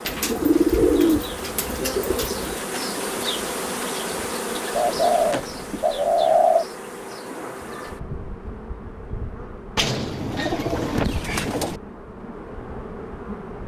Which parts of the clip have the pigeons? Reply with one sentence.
The pigeons can be heard from 0.1 to 2.6 s, from 4.8 to 6.7 s and from 9.8 to 11.8 s.